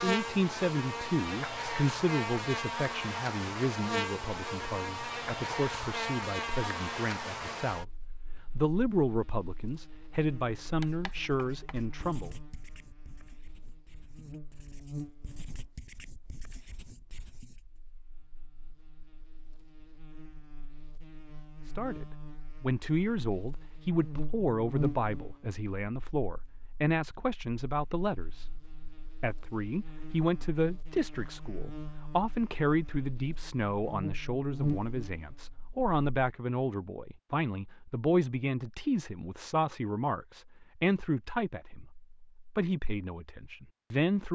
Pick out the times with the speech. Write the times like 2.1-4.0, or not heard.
0.0-12.3, 21.6-44.3.